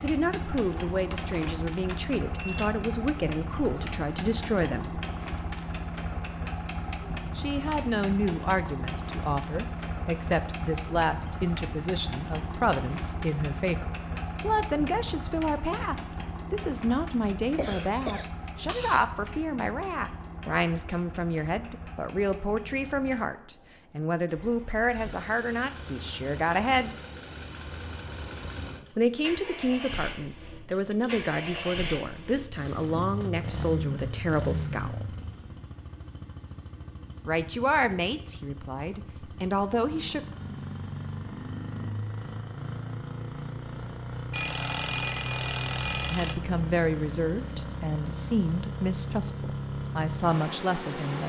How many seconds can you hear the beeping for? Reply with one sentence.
The beeping can be heard for 4 seconds in total.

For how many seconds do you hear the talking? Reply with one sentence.
You can hear the talking for 39 seconds altogether.